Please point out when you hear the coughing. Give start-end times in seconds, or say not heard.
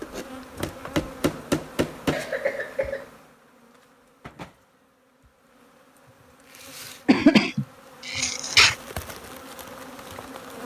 2.1-3.0, 7.0-8.8.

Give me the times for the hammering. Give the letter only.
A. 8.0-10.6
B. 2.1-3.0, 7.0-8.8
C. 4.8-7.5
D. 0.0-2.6
D.